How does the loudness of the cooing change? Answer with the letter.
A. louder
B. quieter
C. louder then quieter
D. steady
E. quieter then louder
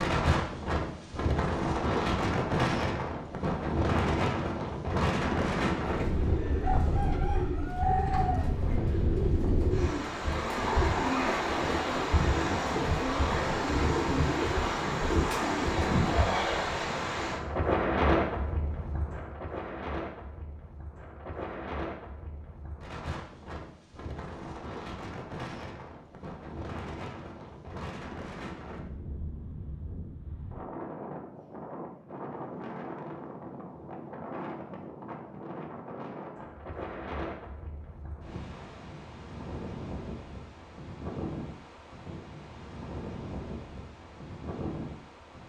D.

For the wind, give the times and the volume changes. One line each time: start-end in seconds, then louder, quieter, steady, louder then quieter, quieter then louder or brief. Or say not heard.
0.0-45.4 quieter.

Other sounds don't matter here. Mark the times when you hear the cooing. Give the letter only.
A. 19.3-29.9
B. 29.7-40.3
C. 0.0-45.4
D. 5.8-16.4
D.